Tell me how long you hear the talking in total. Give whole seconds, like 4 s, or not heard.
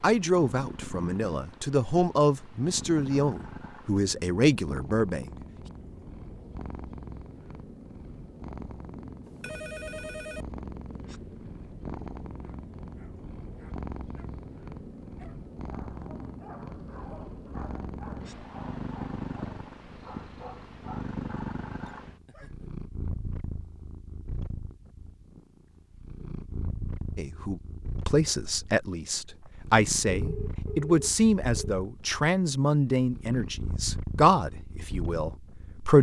14 s.